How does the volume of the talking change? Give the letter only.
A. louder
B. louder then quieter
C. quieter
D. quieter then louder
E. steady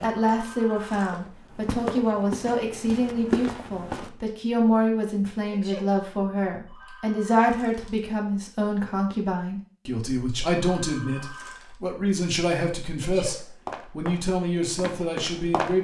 E.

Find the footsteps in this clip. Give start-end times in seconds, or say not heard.
0.0-4.1, 13.3-15.7.